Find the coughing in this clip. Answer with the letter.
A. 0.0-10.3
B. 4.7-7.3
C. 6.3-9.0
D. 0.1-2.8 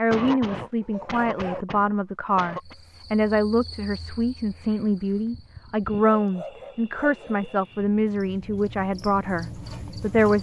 D.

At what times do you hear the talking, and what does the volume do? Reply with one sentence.
The talking can be heard from 0.0 to 10.3 s, at a steady volume.